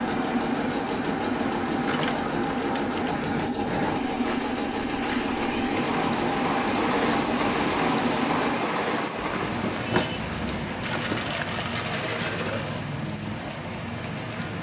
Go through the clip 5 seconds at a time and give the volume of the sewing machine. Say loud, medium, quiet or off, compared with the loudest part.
loud, loud, off.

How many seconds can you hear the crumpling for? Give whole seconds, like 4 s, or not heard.
2 s.